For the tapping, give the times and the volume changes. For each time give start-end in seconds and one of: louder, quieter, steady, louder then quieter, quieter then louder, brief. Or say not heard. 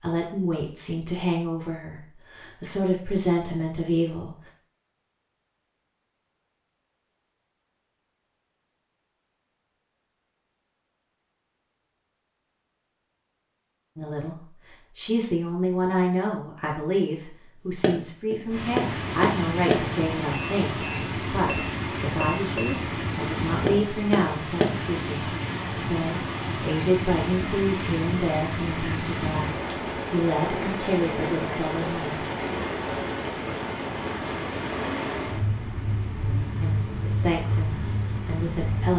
17.8-24.8 quieter then louder.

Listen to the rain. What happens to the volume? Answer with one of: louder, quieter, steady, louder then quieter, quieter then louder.
steady.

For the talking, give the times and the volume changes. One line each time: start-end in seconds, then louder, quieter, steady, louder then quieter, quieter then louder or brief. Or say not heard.
0.0-4.3 quieter then louder
13.9-14.3 brief
14.9-32.2 steady
36.6-38.9 brief.